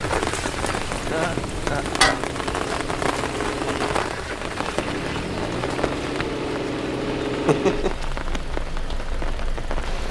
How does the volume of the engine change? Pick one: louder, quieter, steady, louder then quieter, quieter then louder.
louder then quieter.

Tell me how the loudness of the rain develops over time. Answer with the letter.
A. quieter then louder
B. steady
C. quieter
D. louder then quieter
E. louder
C.